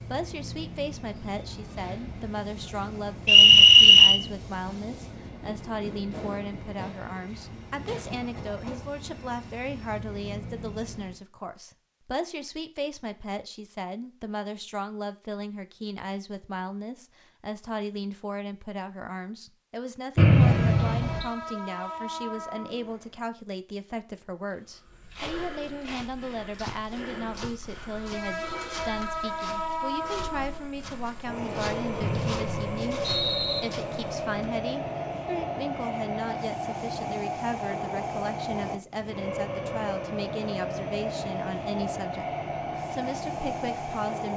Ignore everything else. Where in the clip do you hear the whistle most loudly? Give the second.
4 s.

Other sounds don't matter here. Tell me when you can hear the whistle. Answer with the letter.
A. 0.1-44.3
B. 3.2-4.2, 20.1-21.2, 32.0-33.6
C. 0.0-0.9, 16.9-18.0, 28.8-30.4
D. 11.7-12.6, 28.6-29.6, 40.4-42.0
B.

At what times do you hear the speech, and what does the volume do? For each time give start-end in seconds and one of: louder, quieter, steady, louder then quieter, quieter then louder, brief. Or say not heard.
0.1-44.3 steady.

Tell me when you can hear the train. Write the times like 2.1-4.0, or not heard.
0.0-11.2, 20.4-23.2, 27.9-44.3.